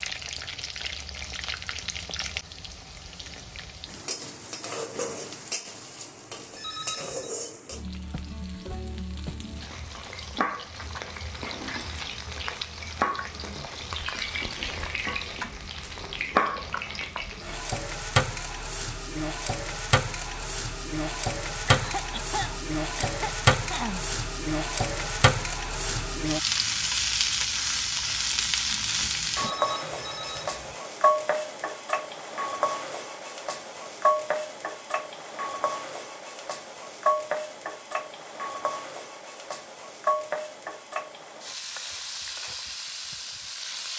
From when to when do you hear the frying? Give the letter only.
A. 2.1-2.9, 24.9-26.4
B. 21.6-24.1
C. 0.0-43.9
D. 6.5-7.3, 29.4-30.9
C.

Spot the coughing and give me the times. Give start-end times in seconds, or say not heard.
21.6-24.1.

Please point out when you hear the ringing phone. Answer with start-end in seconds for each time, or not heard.
6.5-7.3, 29.4-30.9.